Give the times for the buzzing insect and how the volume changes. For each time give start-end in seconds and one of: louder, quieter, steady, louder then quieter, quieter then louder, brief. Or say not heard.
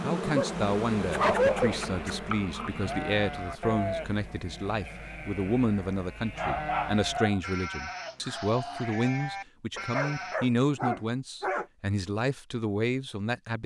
0.0-4.5 quieter.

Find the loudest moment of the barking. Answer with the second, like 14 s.
1 s.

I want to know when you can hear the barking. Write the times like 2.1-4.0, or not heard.
0.3-2.1, 6.3-7.4, 9.8-11.7.